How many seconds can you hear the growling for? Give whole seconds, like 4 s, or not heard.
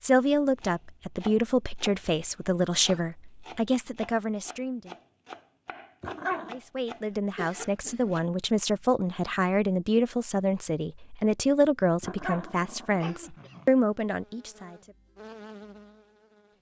2 s.